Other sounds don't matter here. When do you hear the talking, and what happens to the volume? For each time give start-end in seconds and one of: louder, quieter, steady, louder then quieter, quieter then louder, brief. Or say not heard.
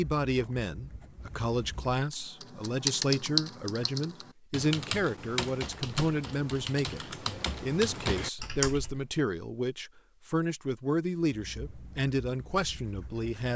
0.0-13.5 steady.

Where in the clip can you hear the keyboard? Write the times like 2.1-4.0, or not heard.
2.1-9.1.